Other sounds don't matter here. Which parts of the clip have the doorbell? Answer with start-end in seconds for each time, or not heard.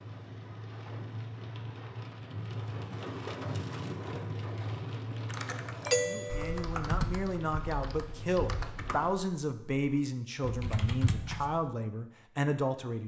5.8-6.7.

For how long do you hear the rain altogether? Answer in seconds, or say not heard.
9 s.